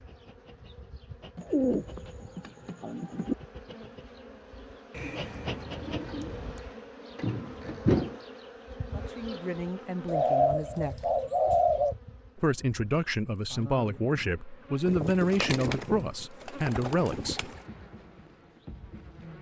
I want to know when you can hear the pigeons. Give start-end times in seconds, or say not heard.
1.4-3.4, 4.9-6.6, 10.1-11.9, 14.8-17.6.